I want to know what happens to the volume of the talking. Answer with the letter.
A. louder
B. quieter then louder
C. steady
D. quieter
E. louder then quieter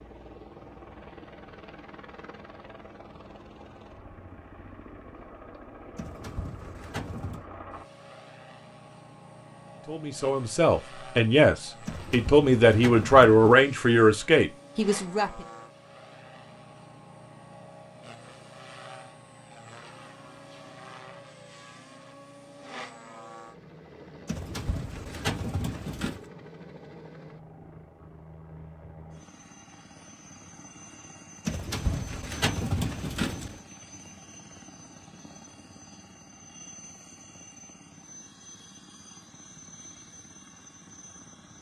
E.